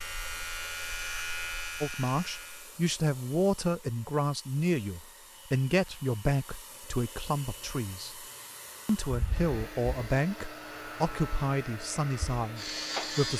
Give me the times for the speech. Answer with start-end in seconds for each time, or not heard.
1.8-8.2, 8.8-13.3.